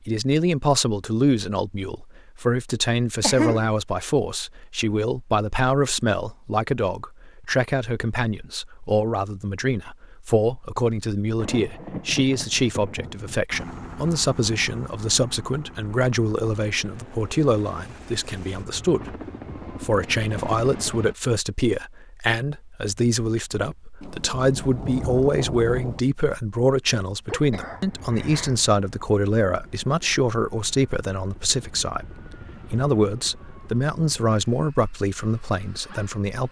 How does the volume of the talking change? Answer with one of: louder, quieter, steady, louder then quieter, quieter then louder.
steady.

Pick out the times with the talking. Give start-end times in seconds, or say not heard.
0.1-19.1, 19.8-36.4.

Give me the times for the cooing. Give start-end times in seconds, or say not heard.
not heard.